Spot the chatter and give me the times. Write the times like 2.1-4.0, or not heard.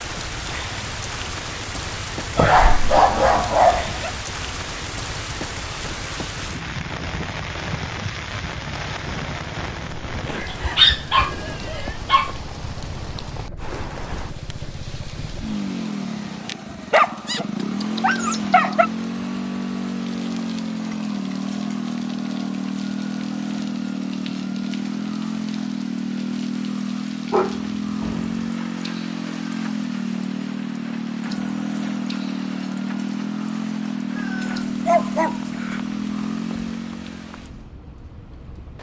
not heard.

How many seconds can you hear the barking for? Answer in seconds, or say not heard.
8 s.